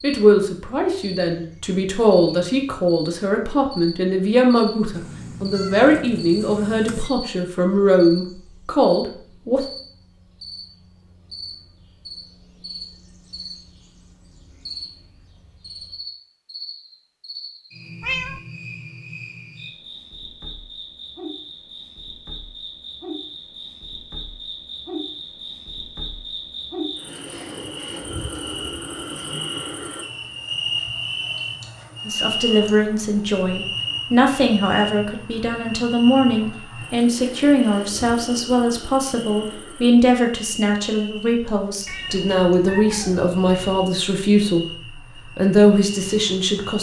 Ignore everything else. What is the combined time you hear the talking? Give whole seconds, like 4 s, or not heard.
24 s.